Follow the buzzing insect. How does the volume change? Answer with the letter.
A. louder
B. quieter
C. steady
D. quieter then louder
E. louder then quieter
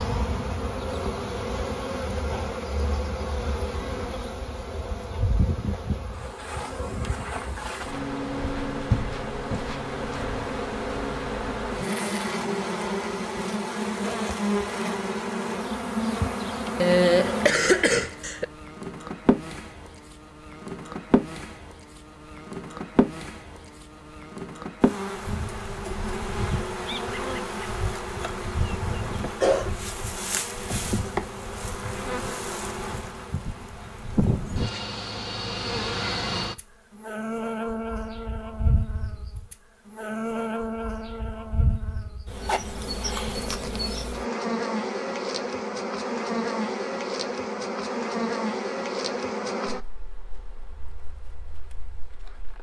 C.